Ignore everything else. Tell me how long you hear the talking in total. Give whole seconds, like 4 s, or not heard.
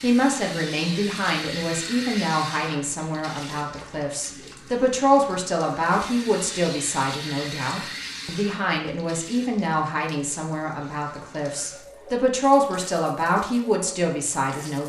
15 s.